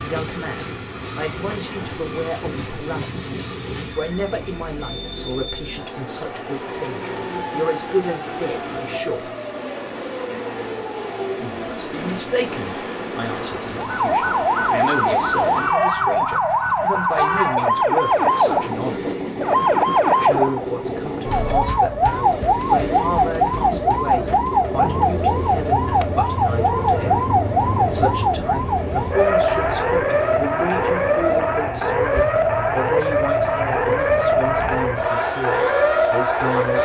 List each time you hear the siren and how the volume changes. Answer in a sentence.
The siren can be heard from 13.8 to 36.8 s, at a steady volume.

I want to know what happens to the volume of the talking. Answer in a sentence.
The volume of the talking stays about the same.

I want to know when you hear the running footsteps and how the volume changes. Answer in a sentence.
The running footsteps can't be heard in this clip.